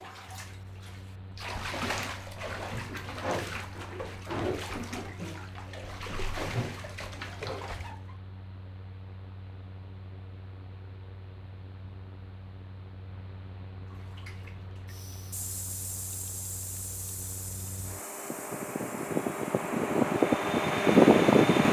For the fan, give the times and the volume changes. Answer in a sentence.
The fan can be heard from 0.0 to 21.6 s, getting louder.